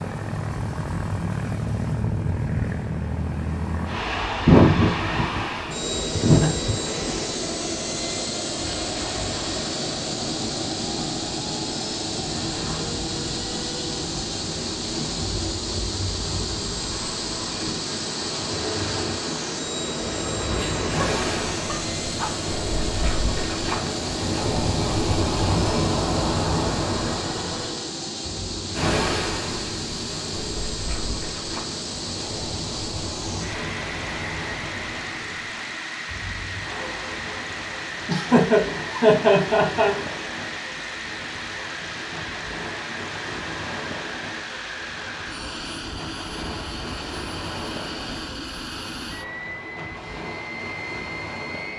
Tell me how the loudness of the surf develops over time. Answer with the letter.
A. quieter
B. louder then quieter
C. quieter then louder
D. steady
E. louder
B.